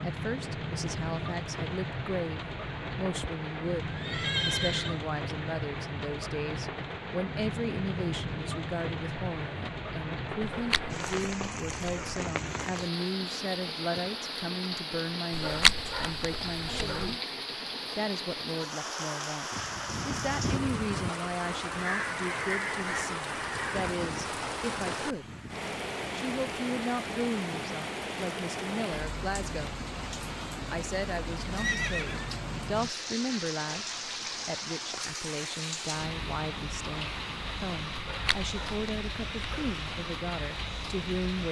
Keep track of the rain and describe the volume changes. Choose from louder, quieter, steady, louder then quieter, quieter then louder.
steady.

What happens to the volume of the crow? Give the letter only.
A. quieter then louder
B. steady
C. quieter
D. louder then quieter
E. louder
C.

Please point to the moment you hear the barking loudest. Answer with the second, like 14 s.
16 s.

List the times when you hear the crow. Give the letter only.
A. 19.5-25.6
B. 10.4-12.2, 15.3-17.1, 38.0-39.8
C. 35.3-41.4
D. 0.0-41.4
A.